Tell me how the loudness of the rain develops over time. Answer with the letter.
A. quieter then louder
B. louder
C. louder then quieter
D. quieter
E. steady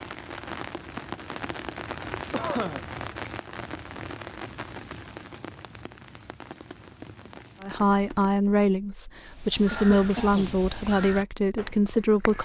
D.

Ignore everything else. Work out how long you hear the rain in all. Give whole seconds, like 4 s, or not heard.
8 s.